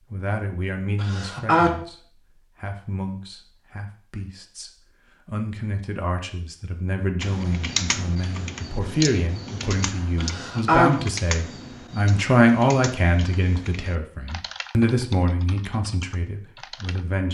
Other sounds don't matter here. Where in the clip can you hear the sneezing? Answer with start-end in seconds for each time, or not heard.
1.0-1.8, 10.2-10.9.